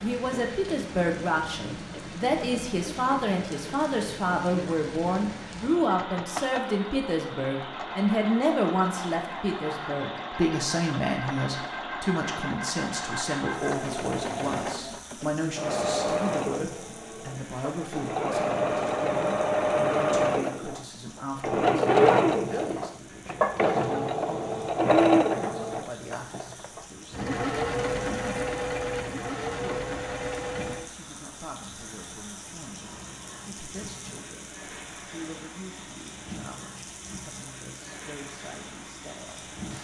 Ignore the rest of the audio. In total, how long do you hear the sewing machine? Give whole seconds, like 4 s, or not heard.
31 s.